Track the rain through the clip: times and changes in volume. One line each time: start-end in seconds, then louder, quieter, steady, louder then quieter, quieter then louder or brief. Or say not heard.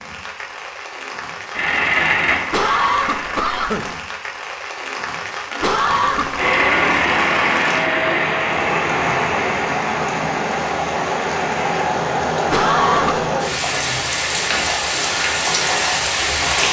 0.0-16.6 louder.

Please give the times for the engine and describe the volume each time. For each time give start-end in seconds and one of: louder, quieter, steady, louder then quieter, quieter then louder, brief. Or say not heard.
1.6-3.2 brief
6.3-11.8 quieter.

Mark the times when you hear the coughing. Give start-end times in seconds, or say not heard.
2.5-3.9, 5.6-6.4, 12.5-13.3.